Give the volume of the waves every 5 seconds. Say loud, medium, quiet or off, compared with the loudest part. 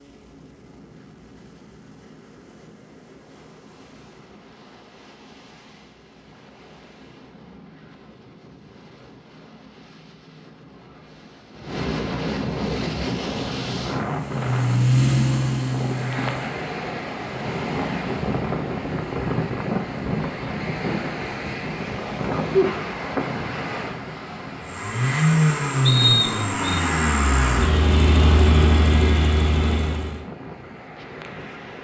quiet, quiet, loud, loud, loud, medium, medium.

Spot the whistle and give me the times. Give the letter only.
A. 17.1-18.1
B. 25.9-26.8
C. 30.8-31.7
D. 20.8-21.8
B.